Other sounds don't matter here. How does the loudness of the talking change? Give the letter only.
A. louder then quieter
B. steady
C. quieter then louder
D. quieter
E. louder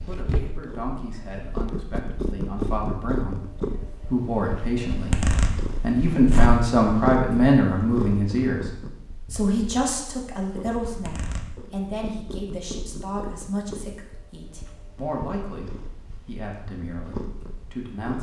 A.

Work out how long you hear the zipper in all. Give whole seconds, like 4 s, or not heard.
3 s.